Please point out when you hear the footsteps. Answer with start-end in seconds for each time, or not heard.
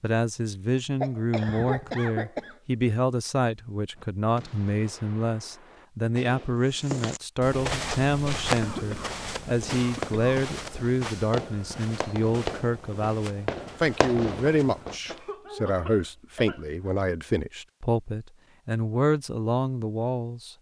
6.7-15.3.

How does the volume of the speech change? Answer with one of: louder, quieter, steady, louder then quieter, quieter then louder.
steady.